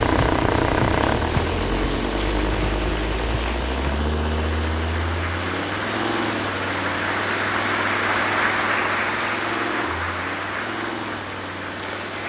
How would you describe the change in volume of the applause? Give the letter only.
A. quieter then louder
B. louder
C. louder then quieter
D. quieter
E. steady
C.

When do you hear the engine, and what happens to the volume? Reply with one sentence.
You can hear the engine from 0.0 to 12.2 s, getting quieter.